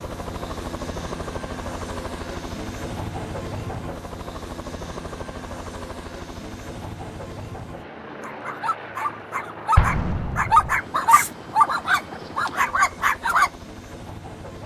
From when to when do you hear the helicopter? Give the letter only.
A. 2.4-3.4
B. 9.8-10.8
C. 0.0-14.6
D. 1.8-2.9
C.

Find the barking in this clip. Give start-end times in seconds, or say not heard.
8.2-13.5.